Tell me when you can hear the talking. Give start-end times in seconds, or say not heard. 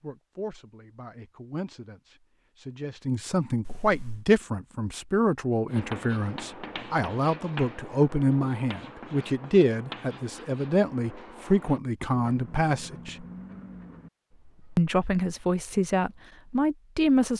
0.0-13.2, 14.8-17.3.